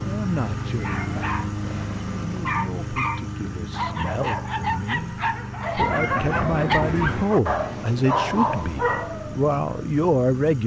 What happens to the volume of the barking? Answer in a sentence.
The volume of the barking goes up.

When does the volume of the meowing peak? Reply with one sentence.
The loudest moment of the meowing is at 6 seconds.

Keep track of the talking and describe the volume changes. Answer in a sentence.
The volume of the talking goes up.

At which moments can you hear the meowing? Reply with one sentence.
You can hear the meowing from 0.8 to 1.5 s and from 5.8 to 7.2 s.